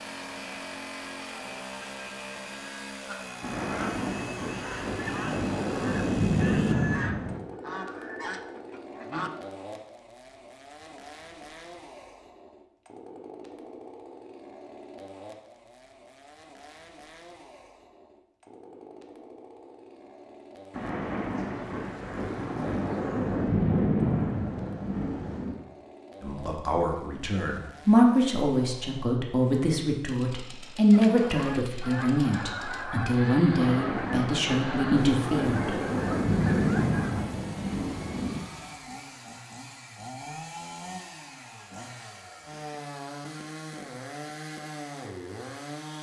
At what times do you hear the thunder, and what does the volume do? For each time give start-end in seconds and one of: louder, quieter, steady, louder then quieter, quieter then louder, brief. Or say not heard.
3.4-7.5 louder
20.7-25.6 louder then quieter
33.5-38.5 louder then quieter.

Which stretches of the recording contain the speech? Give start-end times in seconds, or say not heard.
26.2-35.8.